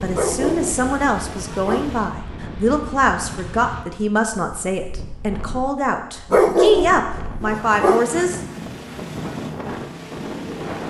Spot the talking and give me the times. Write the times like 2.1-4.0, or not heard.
0.0-8.4.